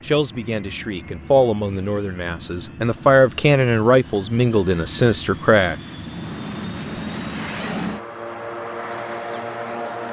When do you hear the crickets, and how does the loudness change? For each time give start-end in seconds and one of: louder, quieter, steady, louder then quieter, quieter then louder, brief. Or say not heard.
3.9-10.0 louder.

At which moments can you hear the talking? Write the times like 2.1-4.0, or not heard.
0.0-5.8.